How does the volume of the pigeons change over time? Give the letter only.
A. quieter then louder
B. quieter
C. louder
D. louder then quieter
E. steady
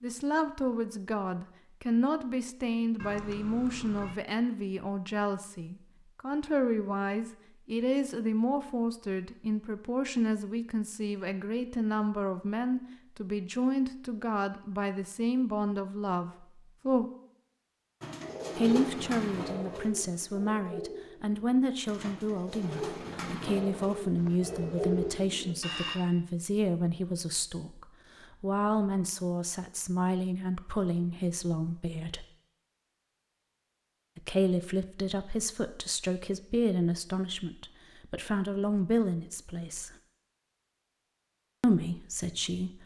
A.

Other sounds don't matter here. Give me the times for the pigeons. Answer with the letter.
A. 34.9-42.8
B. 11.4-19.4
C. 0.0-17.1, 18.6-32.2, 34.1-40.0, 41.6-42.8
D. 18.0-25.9
D.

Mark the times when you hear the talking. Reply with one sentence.
The talking can be heard from 0.0 to 17.1 s, from 18.6 to 32.2 s, from 34.1 to 40.0 s and from 41.6 to 42.8 s.